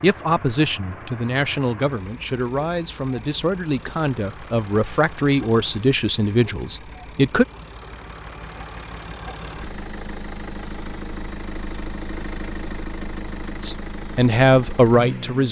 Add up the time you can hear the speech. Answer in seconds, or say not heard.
9 s.